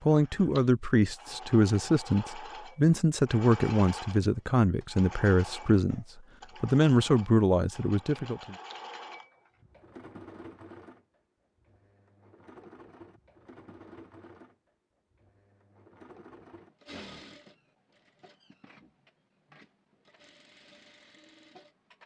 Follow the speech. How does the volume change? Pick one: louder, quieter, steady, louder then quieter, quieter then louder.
steady.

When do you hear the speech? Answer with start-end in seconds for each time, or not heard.
0.0-8.6.